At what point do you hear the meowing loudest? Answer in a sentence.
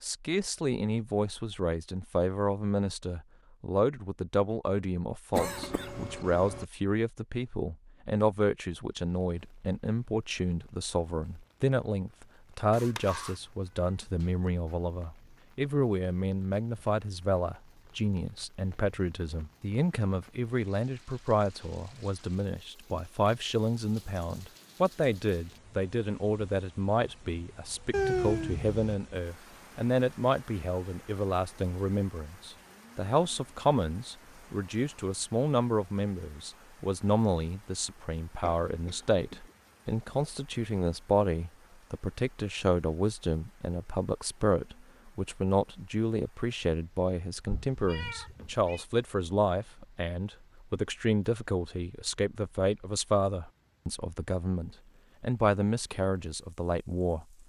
The loudest moment of the meowing is at 28 seconds.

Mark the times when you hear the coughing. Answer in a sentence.
You can hear the coughing from 5.3 to 6.7 s and from 38.4 to 39.5 s.